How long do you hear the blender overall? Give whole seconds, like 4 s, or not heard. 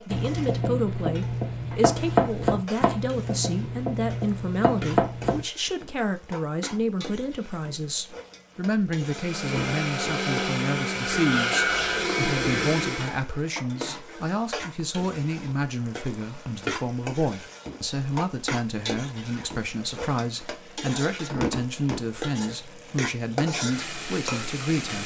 4 s.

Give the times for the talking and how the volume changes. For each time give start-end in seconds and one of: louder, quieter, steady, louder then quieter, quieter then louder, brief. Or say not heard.
0.1-25.0 steady.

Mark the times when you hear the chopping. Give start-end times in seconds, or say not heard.
0.1-5.5.